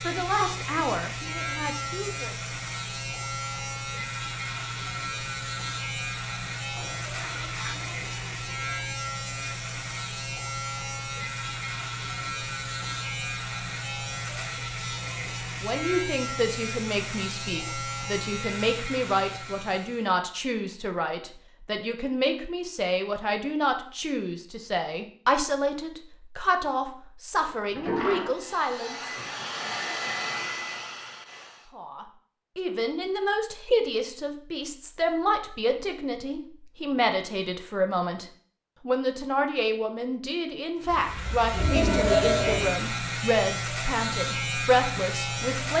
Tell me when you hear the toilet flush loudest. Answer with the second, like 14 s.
42 s.